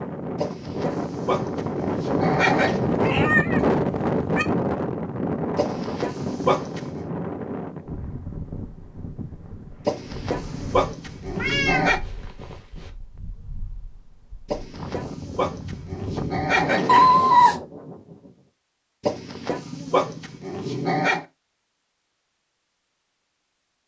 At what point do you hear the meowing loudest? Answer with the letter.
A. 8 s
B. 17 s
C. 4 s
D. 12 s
B.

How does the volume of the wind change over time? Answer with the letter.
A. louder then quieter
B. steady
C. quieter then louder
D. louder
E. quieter
C.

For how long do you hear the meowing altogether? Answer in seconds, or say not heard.
4 s.